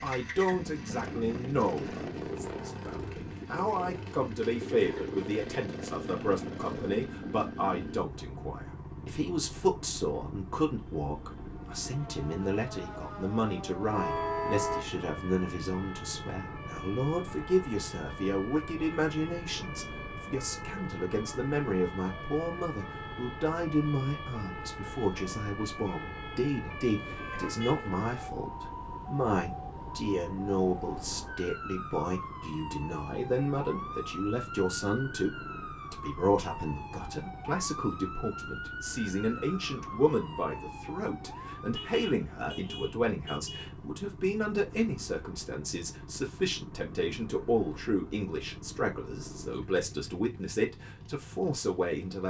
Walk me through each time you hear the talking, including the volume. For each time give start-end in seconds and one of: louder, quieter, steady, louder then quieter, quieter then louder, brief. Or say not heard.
0.0-52.2 steady.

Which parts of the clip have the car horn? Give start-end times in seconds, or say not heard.
13.9-14.8, 26.9-27.9, 41.7-43.9.